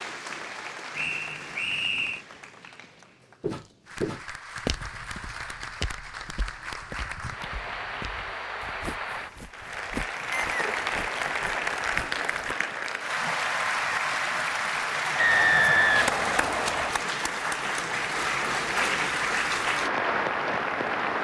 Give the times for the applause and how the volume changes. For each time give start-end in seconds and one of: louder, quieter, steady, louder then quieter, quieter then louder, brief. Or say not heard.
0.0-21.1 louder.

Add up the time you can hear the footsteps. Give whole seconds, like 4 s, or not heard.
9 s.